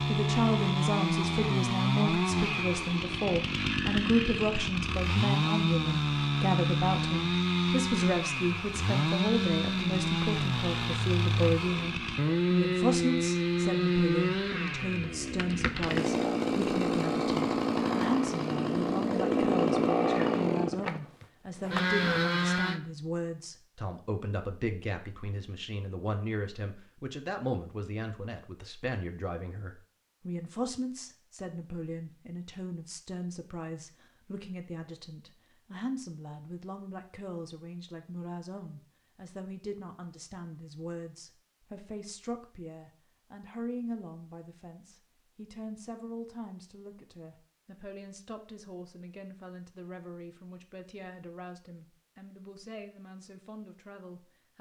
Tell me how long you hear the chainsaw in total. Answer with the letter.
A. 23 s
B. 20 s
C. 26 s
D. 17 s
A.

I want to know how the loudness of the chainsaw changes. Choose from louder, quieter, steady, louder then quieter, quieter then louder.
steady.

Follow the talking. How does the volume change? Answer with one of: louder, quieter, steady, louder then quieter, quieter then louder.
quieter.